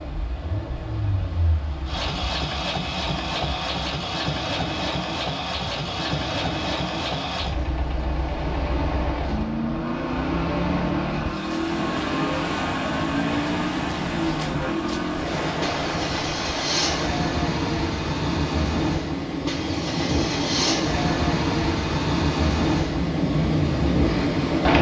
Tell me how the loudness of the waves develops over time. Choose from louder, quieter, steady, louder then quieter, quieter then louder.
louder.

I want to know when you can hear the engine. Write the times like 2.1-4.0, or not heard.
0.2-24.7.